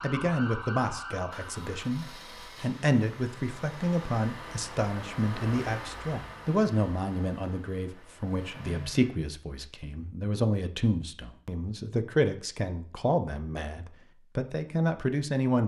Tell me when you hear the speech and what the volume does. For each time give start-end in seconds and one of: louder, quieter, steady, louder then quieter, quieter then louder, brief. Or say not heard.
0.0-15.6 steady.